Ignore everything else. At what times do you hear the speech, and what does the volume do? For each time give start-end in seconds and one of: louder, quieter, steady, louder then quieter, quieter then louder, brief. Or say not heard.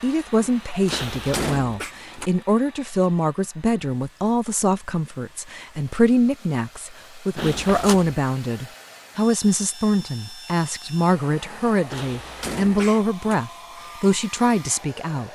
0.0-15.2 steady.